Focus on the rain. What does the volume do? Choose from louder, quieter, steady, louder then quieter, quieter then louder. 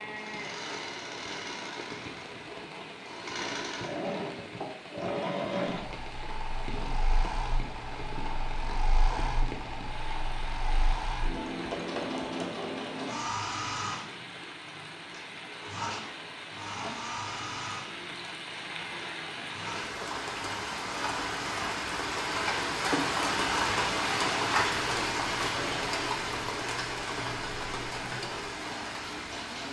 louder.